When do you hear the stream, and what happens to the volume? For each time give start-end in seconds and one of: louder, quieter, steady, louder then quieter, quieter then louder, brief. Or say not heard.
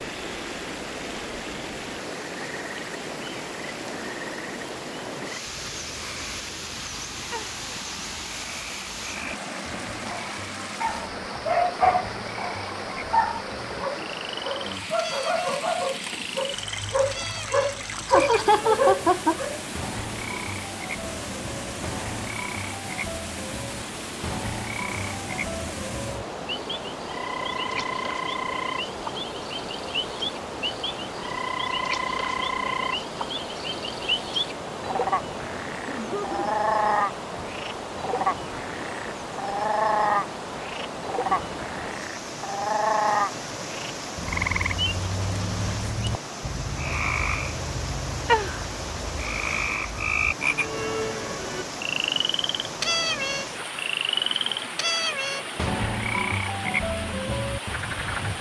0.0-58.3 steady.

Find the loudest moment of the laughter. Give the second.
19 s.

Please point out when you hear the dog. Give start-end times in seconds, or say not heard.
10.1-19.6.